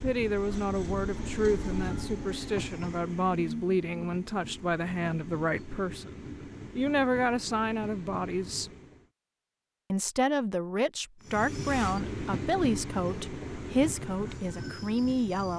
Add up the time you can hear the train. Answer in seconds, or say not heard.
13 s.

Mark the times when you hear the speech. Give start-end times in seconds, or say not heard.
0.0-8.7, 9.9-15.5.